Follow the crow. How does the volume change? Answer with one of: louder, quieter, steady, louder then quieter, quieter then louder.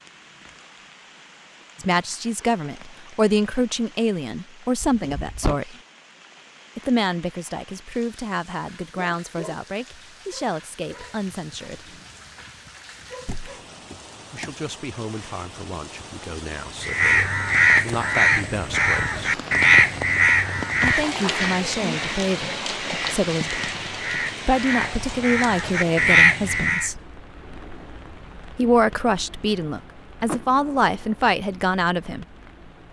quieter then louder.